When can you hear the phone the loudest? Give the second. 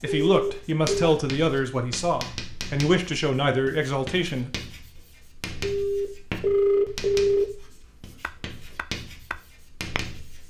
7 s.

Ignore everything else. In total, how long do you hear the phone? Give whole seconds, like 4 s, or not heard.
3 s.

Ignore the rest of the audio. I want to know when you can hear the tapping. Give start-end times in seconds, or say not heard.
8.2-10.2.